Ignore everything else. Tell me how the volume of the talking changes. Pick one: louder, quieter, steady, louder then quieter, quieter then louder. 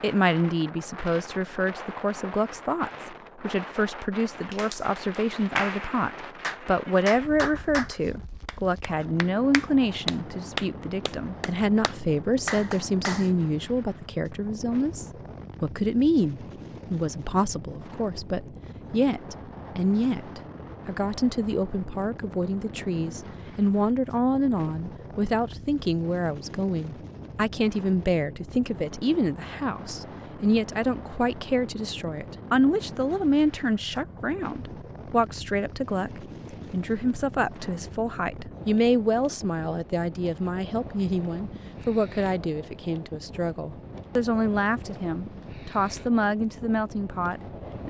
steady.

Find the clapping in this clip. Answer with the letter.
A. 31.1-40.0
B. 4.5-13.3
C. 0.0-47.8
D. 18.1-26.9
B.